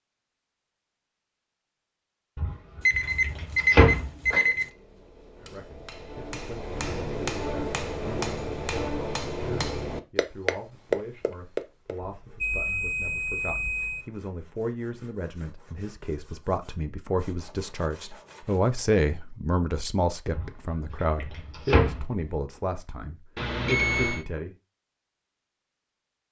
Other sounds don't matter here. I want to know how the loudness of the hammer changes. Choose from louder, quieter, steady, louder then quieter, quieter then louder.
louder.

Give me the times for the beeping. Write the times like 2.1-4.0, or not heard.
2.8-4.7, 12.2-14.1, 23.4-24.2.